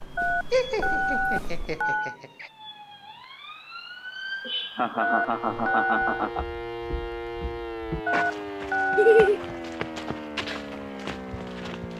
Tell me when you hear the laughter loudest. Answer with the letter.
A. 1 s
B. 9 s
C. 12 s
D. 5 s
B.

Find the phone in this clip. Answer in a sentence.
You can hear the phone from 0.1 to 2.1 s, from 5.0 to 6.2 s and from 8.1 to 9.3 s.